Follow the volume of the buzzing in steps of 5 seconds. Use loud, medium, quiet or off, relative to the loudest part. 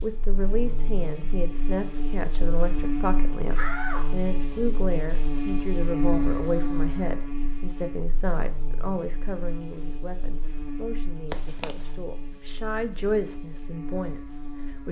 loud, loud, medium.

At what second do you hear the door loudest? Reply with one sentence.
The loudest moment of the door is at 4 seconds.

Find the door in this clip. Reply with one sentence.
You can hear the door from 3.5 to 4.7 s and from 11.3 to 11.8 s.